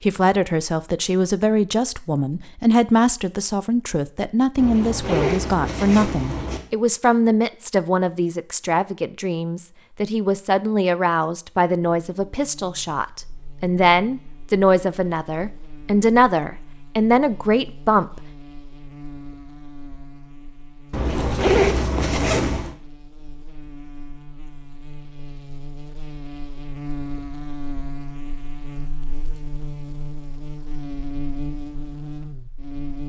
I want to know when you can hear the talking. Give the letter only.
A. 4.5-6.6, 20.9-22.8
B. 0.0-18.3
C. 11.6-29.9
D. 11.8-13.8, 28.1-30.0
B.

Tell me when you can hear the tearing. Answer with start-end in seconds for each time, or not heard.
not heard.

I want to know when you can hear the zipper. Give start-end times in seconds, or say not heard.
4.5-6.6, 20.9-22.8.